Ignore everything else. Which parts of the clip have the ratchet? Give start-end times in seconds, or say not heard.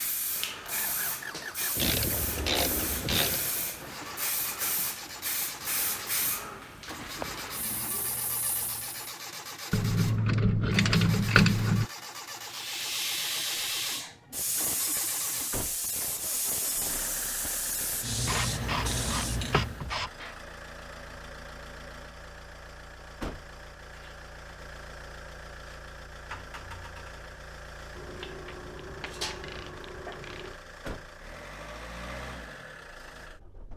1.8-3.4, 9.7-11.8, 18.2-20.1, 27.9-30.6.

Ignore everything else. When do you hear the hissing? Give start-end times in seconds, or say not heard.
0.0-9.2, 12.4-19.9.